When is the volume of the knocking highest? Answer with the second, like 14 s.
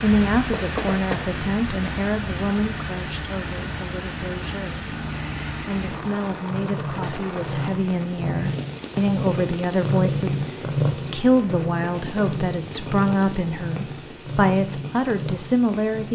1 s.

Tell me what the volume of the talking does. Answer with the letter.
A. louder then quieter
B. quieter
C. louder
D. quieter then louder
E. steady
D.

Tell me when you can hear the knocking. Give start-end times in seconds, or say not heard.
0.5-1.2, 6.8-7.5, 11.6-12.2.